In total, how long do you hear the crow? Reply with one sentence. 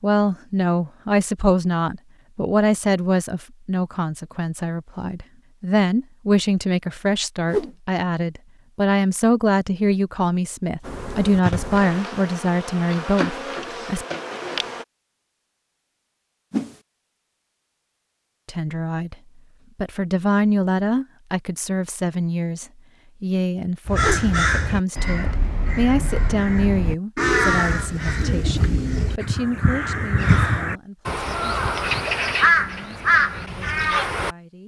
You can hear the crow for 11 seconds altogether.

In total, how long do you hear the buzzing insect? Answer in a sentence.
You can hear the buzzing insect for 4 seconds altogether.